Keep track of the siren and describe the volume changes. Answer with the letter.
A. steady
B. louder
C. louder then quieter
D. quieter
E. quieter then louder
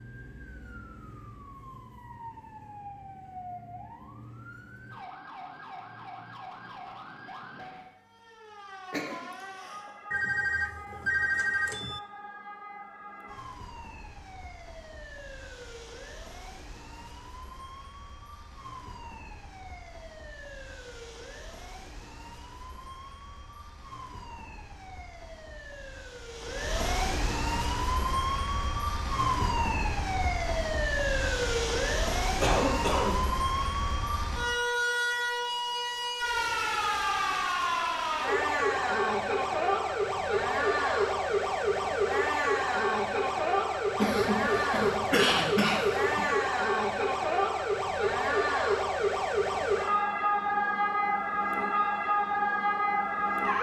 B.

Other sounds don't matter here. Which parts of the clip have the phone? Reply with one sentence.
You can hear the phone from 10.1 to 12.0 s.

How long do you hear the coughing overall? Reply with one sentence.
The coughing can be heard for 4 seconds in total.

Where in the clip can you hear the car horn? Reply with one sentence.
You can't hear the car horn here.